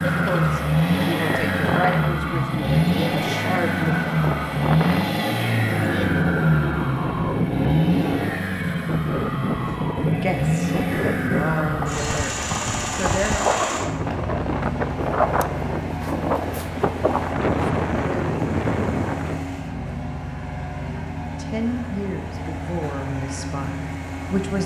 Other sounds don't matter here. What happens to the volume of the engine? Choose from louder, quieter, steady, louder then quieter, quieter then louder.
quieter.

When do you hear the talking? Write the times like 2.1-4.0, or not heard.
0.2-4.1, 9.7-13.4, 21.4-24.6.